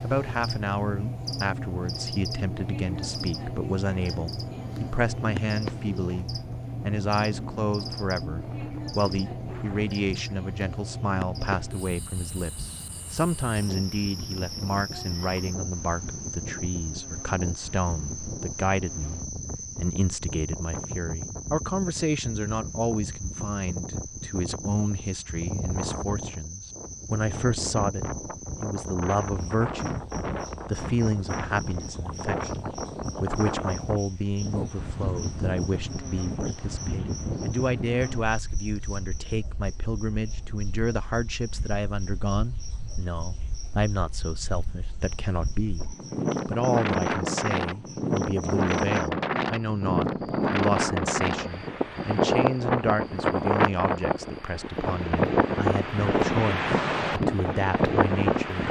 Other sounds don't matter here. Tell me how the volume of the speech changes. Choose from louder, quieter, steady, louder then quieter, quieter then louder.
steady.